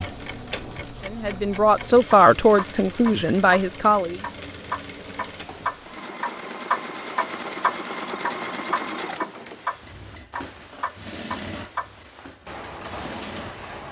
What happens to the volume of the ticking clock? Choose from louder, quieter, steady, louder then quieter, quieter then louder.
louder then quieter.